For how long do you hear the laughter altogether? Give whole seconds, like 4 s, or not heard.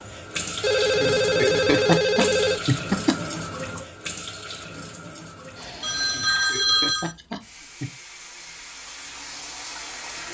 4 s.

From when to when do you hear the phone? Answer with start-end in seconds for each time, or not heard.
0.6-2.6, 5.8-7.2.